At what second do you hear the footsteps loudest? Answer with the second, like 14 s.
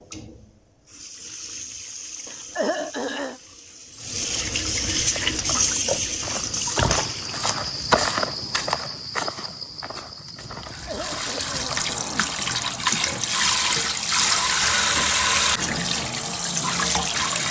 8 s.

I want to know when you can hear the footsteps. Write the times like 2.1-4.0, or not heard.
5.0-12.0.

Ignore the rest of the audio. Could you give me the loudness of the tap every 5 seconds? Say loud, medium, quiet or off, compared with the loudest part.
medium, loud, loud, loud.